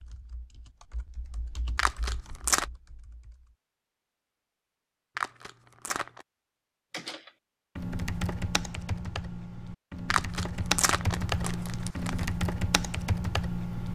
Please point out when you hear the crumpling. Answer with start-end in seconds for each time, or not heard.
1.8-2.6, 5.2-6.2, 10.1-12.2.